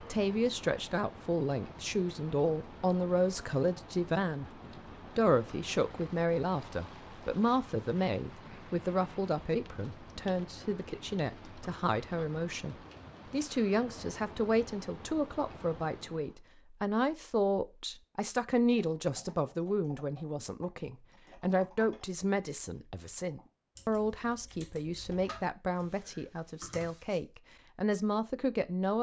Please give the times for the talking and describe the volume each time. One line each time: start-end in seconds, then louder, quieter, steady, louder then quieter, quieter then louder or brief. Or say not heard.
0.0-28.9 steady.